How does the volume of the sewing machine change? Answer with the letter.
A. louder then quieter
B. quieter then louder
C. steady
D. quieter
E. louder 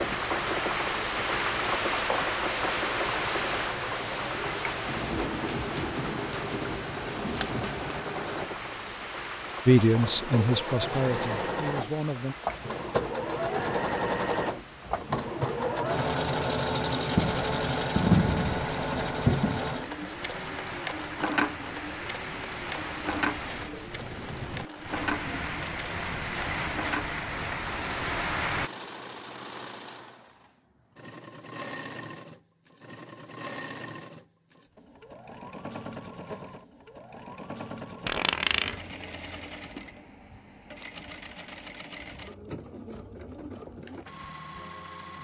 A.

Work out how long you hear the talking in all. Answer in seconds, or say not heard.
3 s.